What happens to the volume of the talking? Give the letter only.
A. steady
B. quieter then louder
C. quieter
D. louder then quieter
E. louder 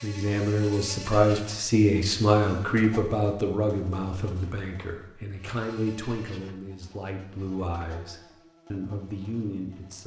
C.